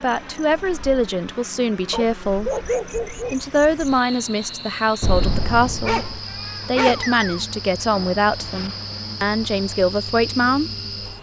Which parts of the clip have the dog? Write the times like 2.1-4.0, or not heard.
1.9-3.4, 5.8-7.5.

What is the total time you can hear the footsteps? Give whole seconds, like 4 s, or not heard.
not heard.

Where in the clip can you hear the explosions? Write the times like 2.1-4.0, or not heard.
5.0-6.2.